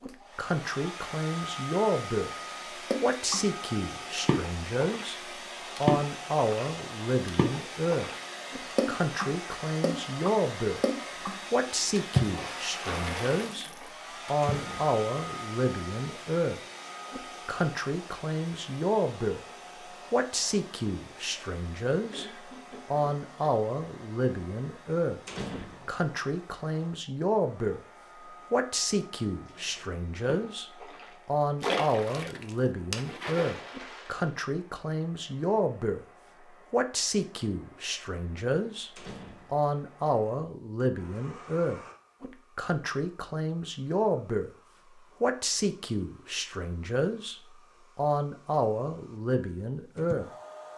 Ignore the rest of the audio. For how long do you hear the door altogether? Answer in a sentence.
You can hear the door for 2 seconds altogether.